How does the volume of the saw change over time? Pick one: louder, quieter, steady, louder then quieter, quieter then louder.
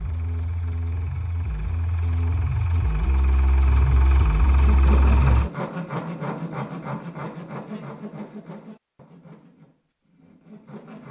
quieter.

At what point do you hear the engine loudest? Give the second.
5 s.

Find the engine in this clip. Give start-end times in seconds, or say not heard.
0.0-5.5.